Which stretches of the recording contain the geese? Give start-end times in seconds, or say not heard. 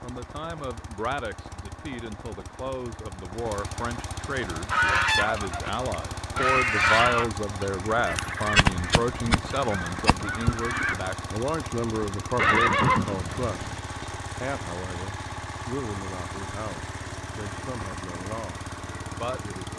4.7-11.0.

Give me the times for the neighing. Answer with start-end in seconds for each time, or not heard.
12.3-13.8.